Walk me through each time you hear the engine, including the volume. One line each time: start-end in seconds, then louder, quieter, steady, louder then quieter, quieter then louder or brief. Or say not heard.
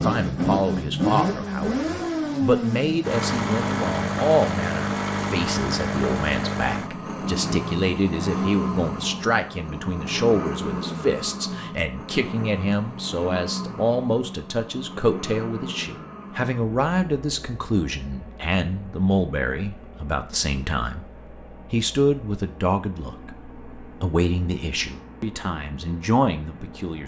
0.0-27.0 quieter.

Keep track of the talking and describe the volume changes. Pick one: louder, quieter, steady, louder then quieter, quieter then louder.
steady.